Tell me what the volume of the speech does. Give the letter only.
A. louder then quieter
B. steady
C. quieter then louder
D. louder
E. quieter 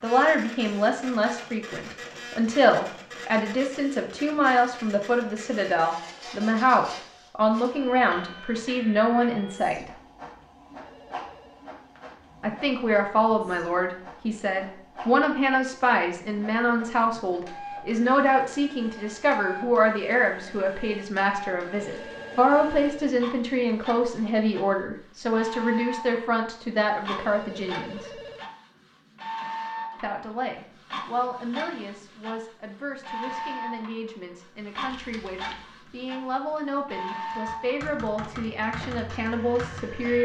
E.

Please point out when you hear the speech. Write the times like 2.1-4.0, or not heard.
0.0-9.9, 12.4-28.2, 30.0-40.1.